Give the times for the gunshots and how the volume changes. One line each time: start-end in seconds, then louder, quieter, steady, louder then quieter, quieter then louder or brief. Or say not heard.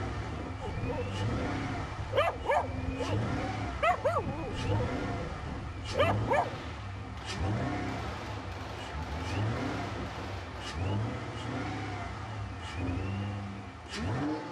6.4-10.8 louder.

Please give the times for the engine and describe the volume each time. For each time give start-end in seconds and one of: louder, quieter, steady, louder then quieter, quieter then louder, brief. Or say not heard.
0.0-14.4 steady.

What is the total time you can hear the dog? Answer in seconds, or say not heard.
6 s.